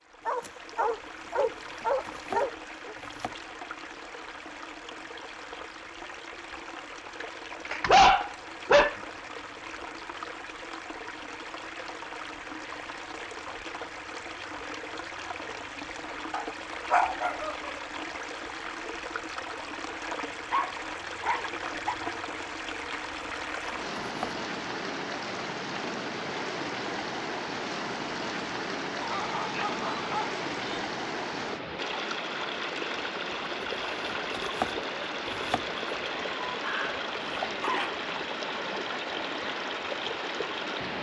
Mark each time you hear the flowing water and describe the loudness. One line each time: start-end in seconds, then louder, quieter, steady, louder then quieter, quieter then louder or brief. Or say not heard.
0.0-40.9 louder.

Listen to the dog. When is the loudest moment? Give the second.
8 s.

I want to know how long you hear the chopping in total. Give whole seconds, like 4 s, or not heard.
4 s.